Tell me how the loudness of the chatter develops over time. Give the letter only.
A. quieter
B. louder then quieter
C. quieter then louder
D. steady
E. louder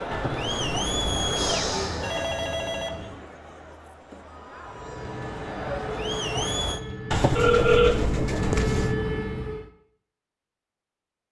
C.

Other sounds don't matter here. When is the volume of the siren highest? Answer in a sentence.
The volume of the siren peaks at 9 seconds.